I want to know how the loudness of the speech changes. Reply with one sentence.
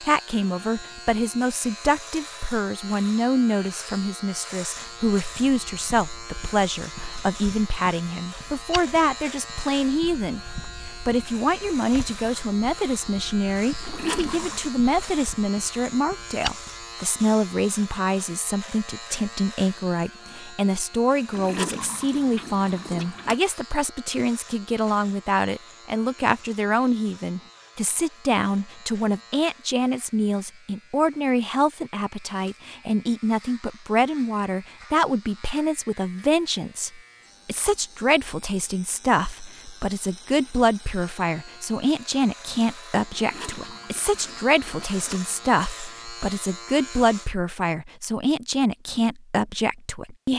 The loudness of the speech stays about the same.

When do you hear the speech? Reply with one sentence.
The speech can be heard from 0.0 to 50.3 s.